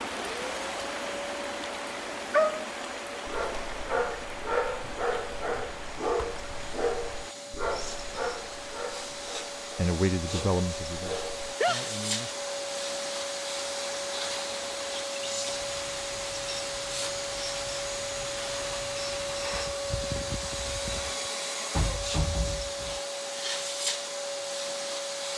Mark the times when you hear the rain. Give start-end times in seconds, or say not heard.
0.0-21.2.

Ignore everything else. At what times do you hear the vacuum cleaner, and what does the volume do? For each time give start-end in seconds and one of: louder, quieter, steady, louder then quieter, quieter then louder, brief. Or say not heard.
0.2-25.3 louder.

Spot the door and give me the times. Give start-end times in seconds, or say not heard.
21.7-23.0.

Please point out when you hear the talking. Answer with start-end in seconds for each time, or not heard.
9.8-12.3.